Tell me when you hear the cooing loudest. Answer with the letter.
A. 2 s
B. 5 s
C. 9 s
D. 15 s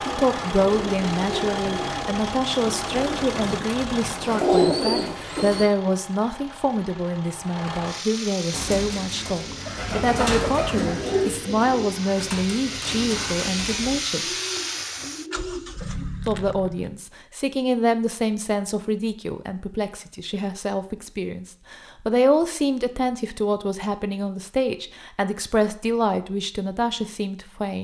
B.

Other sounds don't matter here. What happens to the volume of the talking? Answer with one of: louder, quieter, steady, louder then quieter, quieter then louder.
steady.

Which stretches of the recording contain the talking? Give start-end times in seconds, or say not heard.
0.0-14.3, 16.2-27.8.